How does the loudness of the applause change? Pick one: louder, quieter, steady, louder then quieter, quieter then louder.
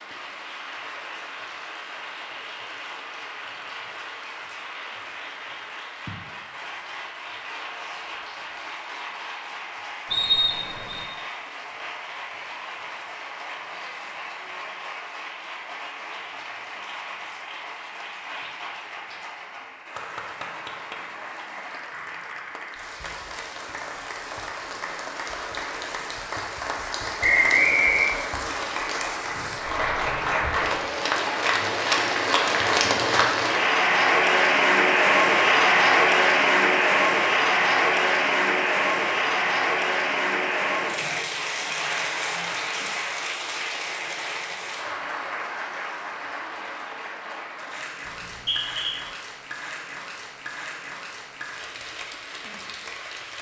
louder then quieter.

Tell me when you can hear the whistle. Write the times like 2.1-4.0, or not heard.
10.1-11.1, 27.2-28.1, 48.0-49.0.